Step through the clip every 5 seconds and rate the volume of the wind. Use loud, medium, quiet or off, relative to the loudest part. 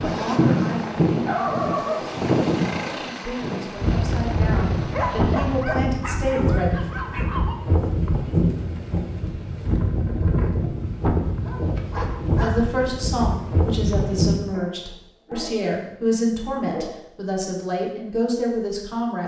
loud, loud, loud, off.